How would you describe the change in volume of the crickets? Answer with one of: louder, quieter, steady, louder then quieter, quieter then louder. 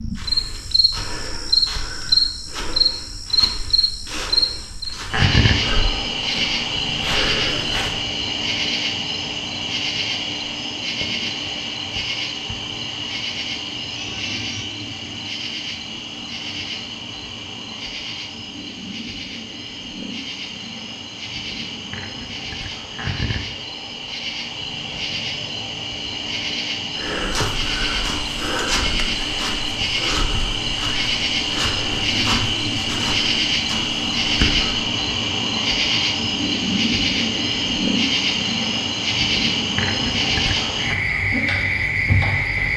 quieter then louder.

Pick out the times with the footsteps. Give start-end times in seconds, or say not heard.
0.1-8.1, 26.9-34.8.